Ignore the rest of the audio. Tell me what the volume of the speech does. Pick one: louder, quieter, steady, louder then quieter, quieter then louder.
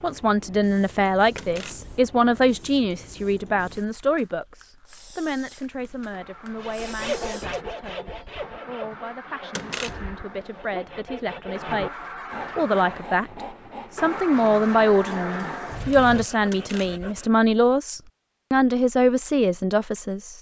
quieter then louder.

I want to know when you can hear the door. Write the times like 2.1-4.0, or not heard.
1.4-1.9, 9.6-10.2, 16.5-17.1.